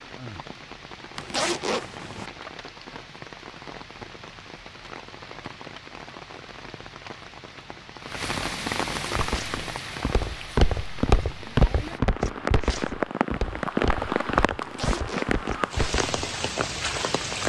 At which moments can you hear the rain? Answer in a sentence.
You can hear the rain from 0.0 to 17.4 s.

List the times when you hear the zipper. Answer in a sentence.
You can hear the zipper from 1.1 to 2.3 s and from 14.6 to 15.8 s.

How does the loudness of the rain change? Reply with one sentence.
The loudness of the rain goes up.